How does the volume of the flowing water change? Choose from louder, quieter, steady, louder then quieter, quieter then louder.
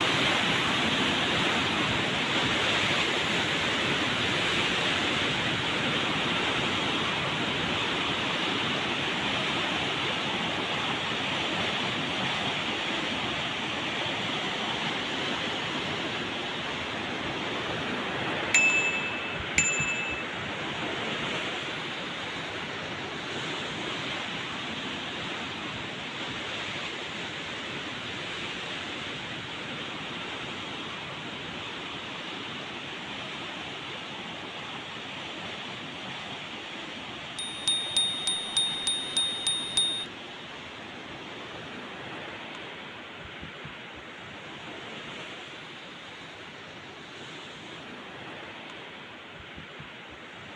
quieter.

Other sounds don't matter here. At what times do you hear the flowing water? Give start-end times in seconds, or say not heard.
0.0-50.5.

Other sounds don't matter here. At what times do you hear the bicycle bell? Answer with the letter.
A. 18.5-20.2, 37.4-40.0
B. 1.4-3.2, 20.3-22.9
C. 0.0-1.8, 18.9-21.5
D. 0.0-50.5
A.